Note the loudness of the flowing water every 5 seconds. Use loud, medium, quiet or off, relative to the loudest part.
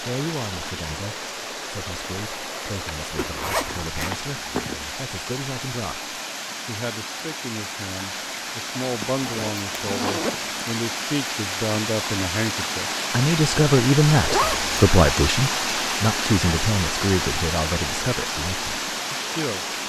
medium, medium, loud, loud.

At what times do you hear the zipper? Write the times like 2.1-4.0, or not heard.
3.1-5.0, 8.8-10.6, 14.2-14.8.